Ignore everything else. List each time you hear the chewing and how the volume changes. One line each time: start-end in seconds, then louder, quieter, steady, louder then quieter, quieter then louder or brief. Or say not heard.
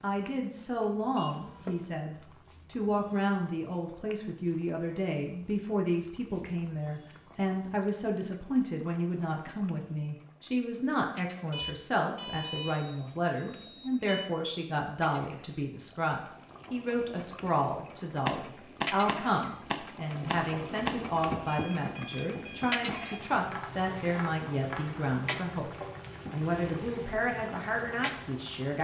not heard.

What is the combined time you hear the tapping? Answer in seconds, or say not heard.
8 s.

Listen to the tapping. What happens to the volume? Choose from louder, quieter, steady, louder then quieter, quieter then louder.
quieter.